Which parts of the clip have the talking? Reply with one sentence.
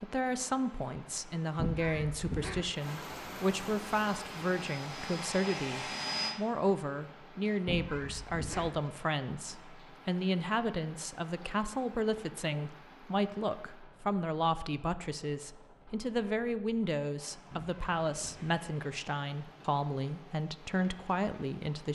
You can hear the talking from 0.0 to 21.8 s.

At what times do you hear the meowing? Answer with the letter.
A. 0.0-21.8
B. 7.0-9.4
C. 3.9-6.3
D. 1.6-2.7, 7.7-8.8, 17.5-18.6
D.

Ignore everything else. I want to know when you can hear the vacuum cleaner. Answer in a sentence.
The vacuum cleaner can be heard from 3.9 to 6.3 s.